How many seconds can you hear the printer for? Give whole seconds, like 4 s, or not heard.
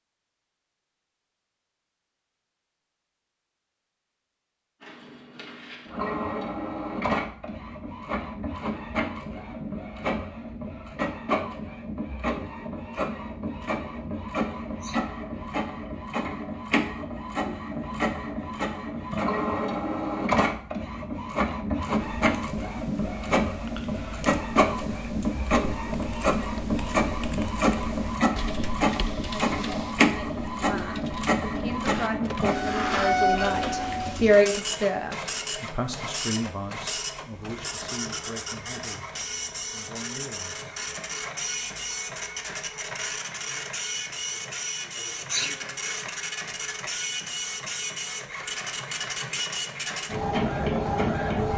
47 s.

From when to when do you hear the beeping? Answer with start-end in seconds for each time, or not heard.
not heard.